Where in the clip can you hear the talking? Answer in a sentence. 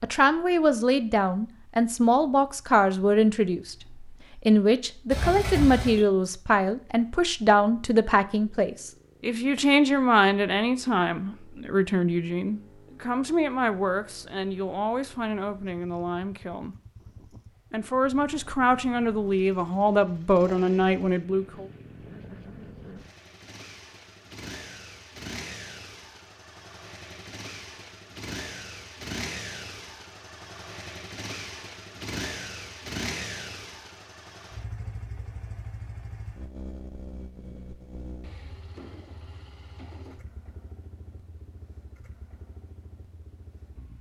The talking can be heard from 0.0 to 16.8 s and from 17.7 to 21.6 s.